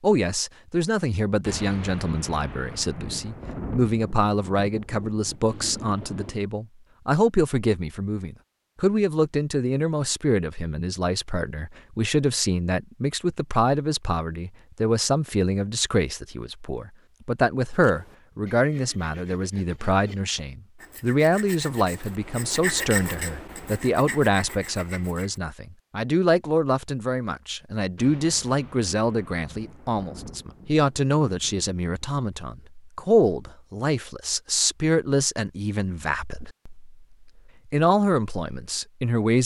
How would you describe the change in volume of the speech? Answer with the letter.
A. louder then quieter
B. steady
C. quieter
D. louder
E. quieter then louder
B.